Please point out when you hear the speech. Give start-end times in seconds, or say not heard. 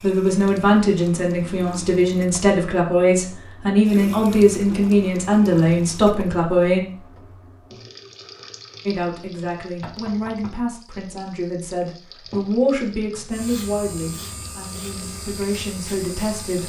0.0-6.8, 8.8-16.6.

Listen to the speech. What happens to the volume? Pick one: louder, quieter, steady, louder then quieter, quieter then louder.
quieter.